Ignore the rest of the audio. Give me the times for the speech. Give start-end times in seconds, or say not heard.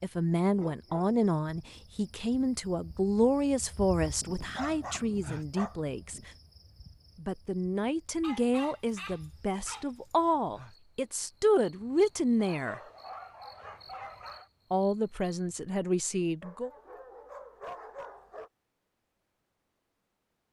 0.0-6.3, 7.2-12.8, 14.7-16.7.